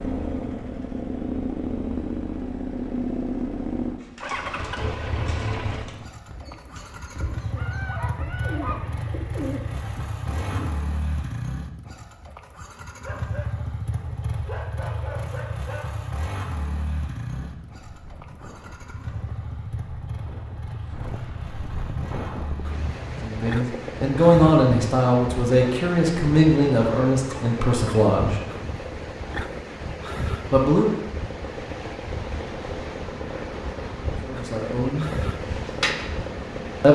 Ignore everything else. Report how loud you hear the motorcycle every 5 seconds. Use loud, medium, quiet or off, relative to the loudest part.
loud, medium, medium, medium, medium, medium, medium, medium.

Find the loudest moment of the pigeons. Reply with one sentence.
The volume of the pigeons peaks at 36 seconds.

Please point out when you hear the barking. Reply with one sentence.
The barking can be heard from 7.5 to 9.2 s, from 13.0 to 15.9 s and from 27.2 to 28.0 s.